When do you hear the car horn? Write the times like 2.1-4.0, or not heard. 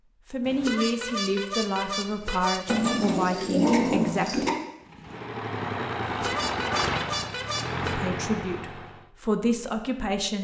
0.5-3.0, 6.0-8.0.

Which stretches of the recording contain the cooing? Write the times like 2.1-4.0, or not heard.
2.6-4.5.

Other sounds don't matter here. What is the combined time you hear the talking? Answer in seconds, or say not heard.
7 s.